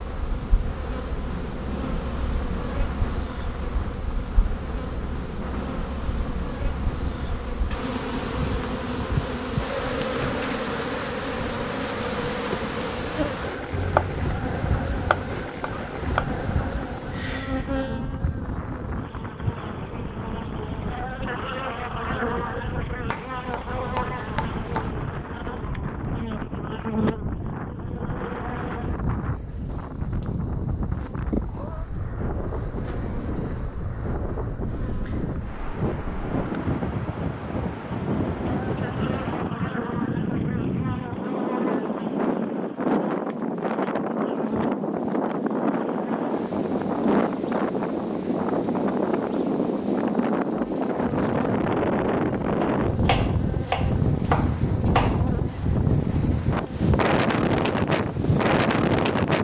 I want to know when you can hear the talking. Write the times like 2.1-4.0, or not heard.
not heard.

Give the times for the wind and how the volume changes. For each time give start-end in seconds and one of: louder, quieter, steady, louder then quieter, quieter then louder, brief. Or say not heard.
0.0-59.4 louder.